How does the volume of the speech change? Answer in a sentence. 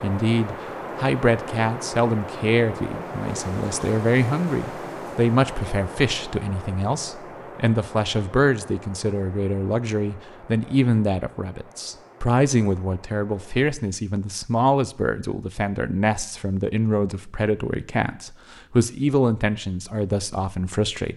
The volume of the speech stays about the same.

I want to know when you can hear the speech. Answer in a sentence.
You can hear the speech from 0.0 to 21.1 s.